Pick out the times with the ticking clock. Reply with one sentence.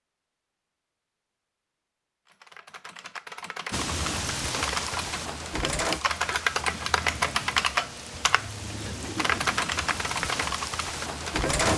You can't hear the ticking clock here.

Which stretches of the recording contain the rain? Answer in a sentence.
The rain can be heard from 3.7 to 11.7 s.